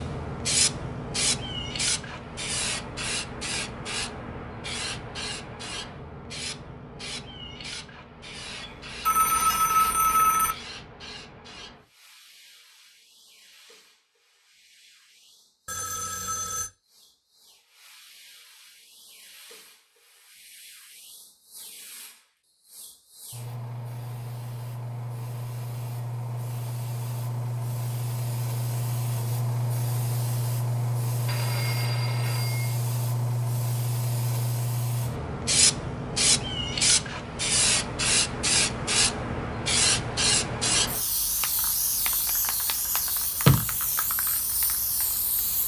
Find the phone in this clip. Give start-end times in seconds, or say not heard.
8.6-10.6, 15.7-16.7, 31.2-32.8.